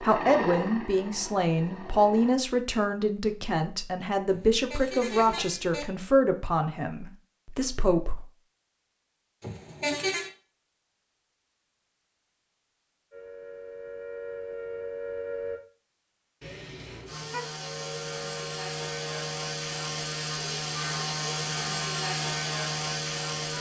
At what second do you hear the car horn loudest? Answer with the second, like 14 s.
10 s.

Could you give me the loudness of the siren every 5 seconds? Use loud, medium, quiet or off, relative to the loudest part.
off, off, loud, loud, medium.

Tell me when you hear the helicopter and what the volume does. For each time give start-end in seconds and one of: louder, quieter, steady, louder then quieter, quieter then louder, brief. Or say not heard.
0.0-2.4 brief
17.1-23.5 louder.